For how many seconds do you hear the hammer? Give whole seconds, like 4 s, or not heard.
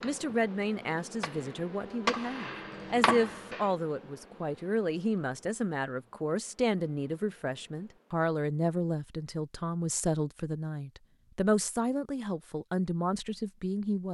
4 s.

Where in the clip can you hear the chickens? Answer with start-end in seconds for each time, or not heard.
not heard.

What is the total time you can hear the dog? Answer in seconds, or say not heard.
not heard.